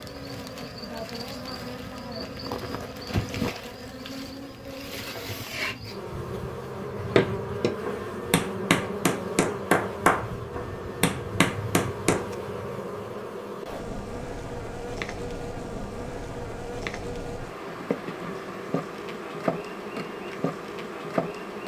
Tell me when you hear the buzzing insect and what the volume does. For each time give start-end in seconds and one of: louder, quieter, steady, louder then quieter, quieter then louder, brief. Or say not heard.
0.0-21.6 steady.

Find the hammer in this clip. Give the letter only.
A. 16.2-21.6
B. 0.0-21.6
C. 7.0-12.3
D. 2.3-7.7
C.